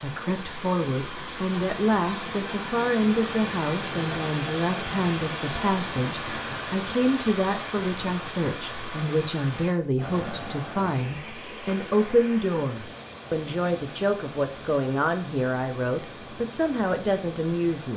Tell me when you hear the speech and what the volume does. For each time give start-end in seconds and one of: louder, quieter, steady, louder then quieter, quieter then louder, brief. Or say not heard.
0.0-17.9 steady.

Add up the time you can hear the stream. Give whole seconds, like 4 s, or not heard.
18 s.